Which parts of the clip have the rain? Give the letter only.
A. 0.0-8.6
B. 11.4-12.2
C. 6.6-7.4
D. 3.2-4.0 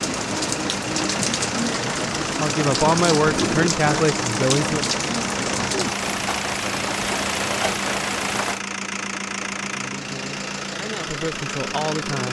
A.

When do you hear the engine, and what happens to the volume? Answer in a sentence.
The engine can be heard from 0.0 to 12.2 s, at a steady volume.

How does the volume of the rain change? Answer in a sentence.
The volume of the rain stays about the same.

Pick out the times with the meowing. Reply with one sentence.
You can hear the meowing from 3.2 to 4.0 s.